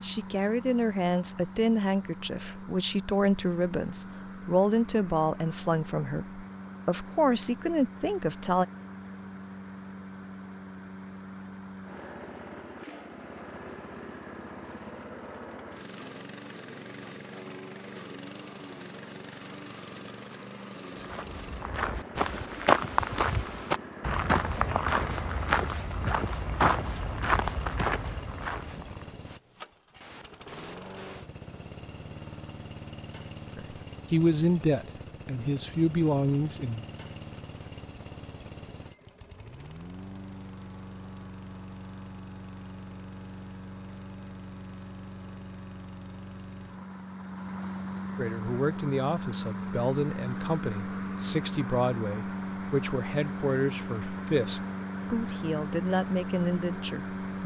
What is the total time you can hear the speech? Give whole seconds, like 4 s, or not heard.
21 s.